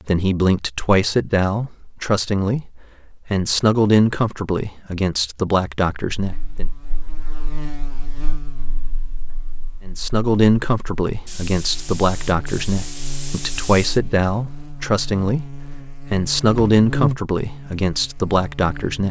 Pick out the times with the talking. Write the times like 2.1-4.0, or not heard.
0.1-6.7, 9.8-19.0.